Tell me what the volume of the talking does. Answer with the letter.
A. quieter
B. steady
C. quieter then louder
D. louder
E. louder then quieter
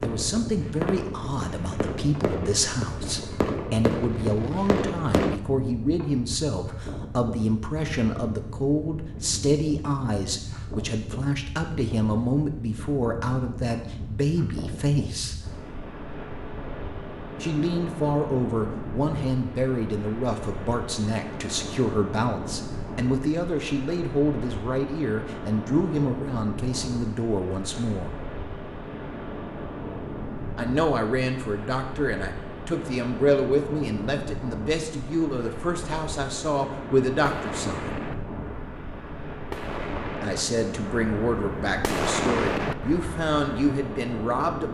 B.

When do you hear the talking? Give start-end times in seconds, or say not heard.
0.0-15.3, 17.4-28.1, 30.6-38.0, 40.2-44.6.